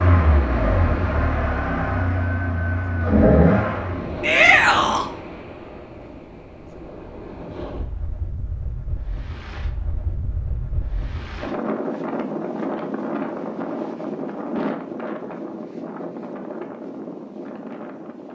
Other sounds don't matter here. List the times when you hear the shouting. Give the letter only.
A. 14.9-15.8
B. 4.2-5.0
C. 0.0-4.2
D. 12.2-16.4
B.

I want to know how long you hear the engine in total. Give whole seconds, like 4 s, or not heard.
4 s.